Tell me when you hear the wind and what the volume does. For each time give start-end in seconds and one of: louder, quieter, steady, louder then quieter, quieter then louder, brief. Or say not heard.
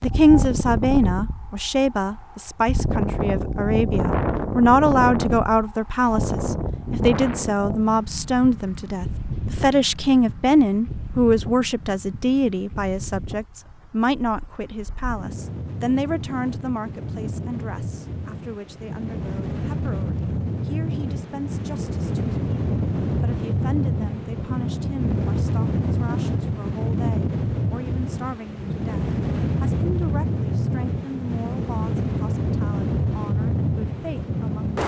0.0-34.8 quieter then louder.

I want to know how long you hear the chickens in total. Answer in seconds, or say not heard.
not heard.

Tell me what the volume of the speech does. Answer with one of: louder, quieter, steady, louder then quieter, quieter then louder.
quieter.